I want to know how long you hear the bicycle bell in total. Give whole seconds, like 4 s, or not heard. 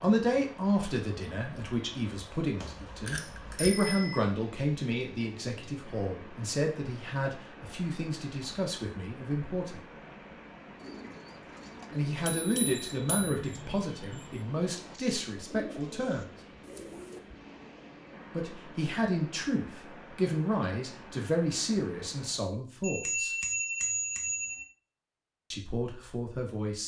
5 s.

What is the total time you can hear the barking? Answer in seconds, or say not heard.
not heard.